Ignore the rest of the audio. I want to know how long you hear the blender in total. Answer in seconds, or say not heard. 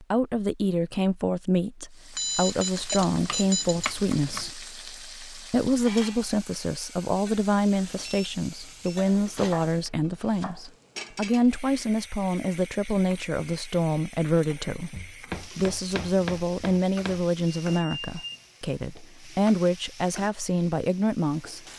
not heard.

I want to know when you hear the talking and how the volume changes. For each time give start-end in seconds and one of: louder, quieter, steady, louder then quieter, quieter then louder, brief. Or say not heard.
0.0-21.6 steady.